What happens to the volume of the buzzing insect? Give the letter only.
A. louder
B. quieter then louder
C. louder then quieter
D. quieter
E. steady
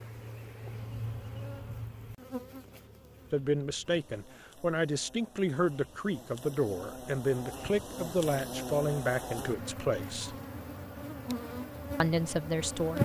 B.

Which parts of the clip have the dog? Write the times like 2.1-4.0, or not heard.
not heard.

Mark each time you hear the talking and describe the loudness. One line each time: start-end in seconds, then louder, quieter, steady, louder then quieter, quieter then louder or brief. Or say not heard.
3.3-10.3 steady
12.0-12.9 brief.